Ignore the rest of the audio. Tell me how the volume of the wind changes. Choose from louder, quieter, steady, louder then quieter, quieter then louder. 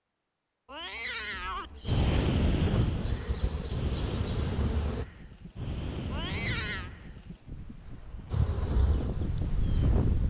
quieter then louder.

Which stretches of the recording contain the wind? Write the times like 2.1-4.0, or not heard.
1.9-10.2.